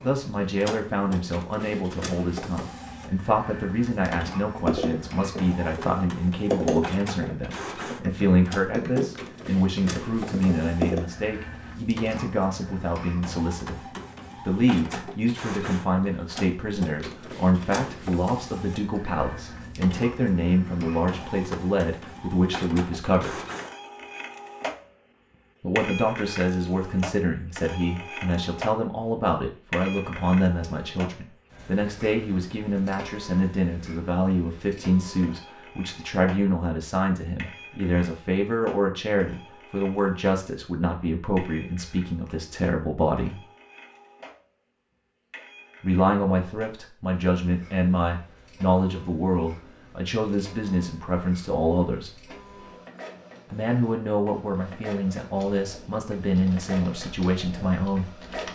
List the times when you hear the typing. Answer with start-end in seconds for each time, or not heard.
4.5-11.0, 55.4-58.4.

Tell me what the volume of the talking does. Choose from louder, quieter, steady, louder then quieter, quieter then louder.
steady.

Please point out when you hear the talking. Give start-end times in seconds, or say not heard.
0.0-23.4, 25.6-43.4, 45.8-52.2, 53.5-58.0.